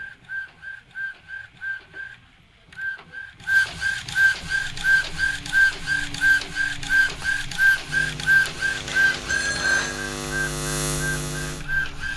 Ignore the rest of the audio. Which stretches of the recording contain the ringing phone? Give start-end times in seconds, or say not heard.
8.8-10.0.